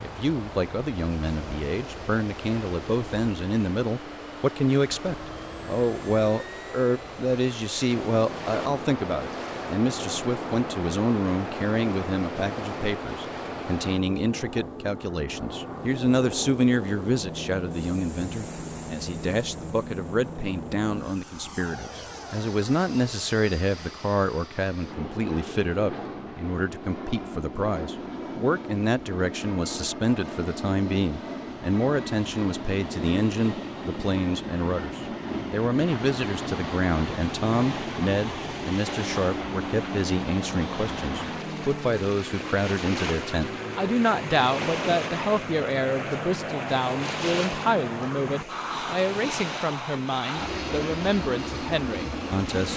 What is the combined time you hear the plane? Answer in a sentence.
The plane can be heard for 53 seconds in total.